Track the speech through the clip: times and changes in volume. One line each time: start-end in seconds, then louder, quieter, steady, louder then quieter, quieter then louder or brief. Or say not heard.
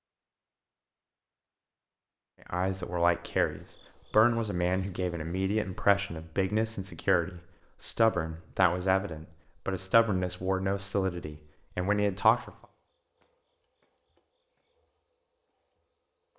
2.5-12.5 steady.